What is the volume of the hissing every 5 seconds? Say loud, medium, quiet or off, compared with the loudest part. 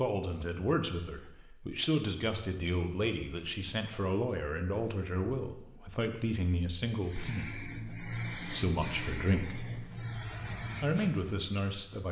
off, loud, loud.